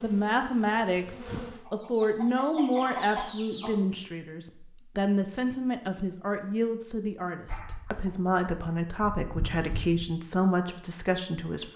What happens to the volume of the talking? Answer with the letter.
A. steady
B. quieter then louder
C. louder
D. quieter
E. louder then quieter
A.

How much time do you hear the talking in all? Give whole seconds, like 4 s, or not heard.
12 s.